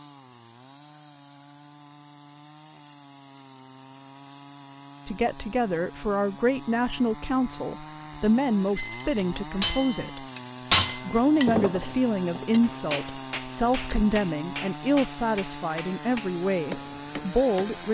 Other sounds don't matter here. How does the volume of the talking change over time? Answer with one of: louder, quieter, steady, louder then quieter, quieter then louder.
steady.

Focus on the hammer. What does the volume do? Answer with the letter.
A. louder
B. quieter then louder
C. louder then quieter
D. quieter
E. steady
D.